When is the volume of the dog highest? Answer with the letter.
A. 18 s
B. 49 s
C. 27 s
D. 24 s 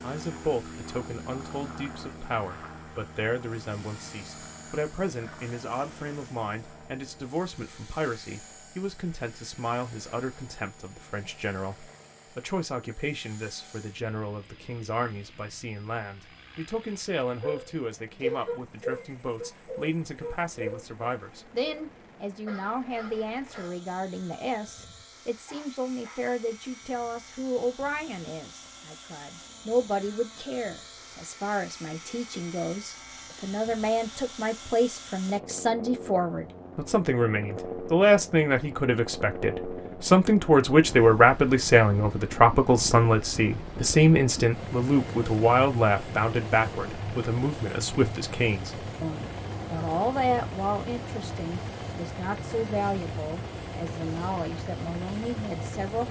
A.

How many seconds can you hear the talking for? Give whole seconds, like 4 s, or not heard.
56 s.